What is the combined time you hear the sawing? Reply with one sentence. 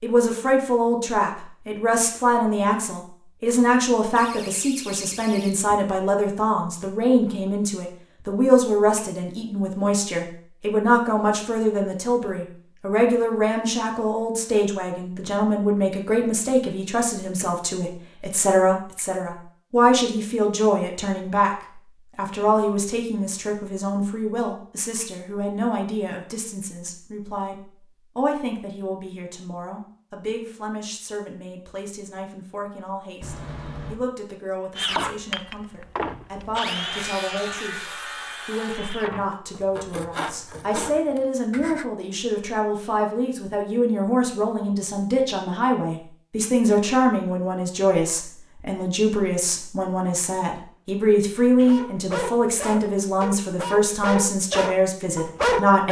The sawing can be heard for 7 seconds in total.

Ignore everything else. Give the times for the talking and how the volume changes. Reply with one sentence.
The talking can be heard from 0.0 to 55.8 s, getting quieter then louder.